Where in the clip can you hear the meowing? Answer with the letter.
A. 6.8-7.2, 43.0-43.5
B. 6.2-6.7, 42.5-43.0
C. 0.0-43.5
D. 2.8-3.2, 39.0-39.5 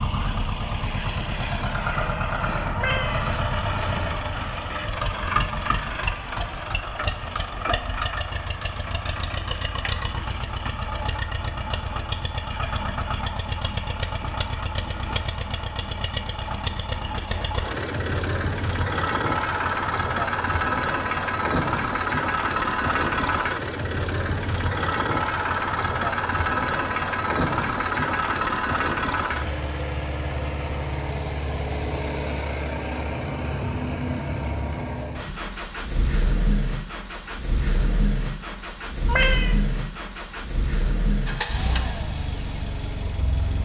D.